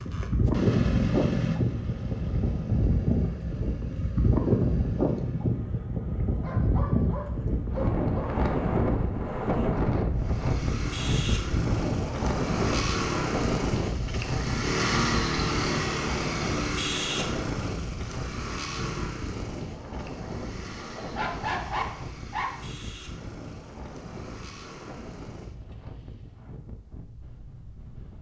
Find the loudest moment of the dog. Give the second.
22 s.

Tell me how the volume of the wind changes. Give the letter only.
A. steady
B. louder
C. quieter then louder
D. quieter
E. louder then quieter
D.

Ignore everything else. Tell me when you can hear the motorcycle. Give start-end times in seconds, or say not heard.
0.0-5.7, 10.2-26.5.